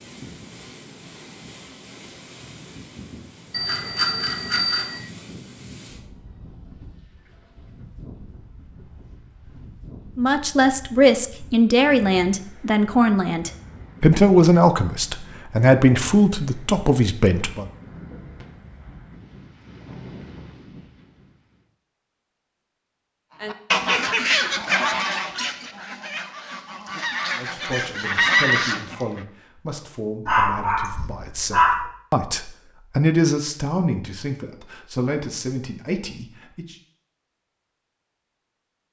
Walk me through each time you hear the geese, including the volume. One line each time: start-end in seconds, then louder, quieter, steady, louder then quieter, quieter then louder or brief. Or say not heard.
23.4-29.2 quieter then louder.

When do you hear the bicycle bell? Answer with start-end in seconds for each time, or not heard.
3.5-5.0.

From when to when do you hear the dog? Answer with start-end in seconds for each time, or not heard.
30.2-31.9.